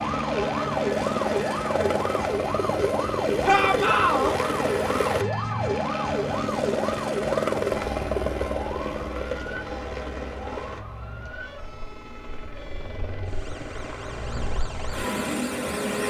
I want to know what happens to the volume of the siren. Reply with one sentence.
The volume of the siren goes down.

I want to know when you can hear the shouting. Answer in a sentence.
The shouting can be heard from 3.5 to 4.3 s.